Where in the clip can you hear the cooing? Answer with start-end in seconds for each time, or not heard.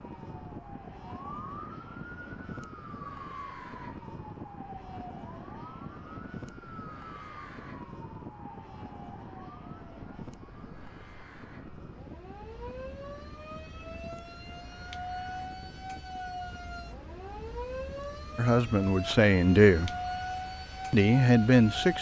not heard.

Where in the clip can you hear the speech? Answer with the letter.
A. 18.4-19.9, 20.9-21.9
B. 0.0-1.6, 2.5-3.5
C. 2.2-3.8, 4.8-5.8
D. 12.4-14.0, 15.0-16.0
A.